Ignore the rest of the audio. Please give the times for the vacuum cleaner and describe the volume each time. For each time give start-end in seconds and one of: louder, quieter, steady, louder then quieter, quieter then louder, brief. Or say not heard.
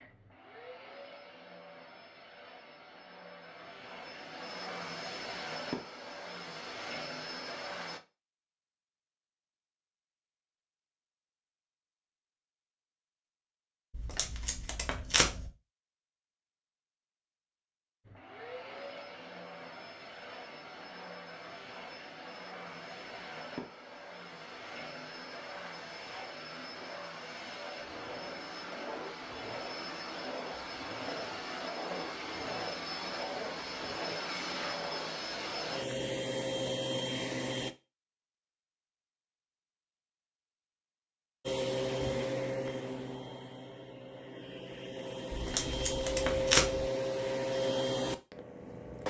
0.0-8.0 louder
18.1-37.8 louder
41.5-49.0 quieter then louder.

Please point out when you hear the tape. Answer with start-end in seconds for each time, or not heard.
13.9-15.5, 45.4-46.9.